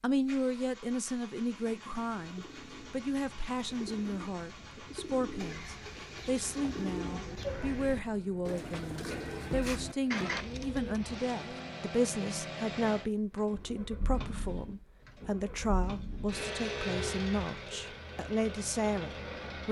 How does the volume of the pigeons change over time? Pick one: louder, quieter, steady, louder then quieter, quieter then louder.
louder.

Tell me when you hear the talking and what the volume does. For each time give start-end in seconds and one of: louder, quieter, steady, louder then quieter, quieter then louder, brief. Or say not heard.
0.0-19.6 steady.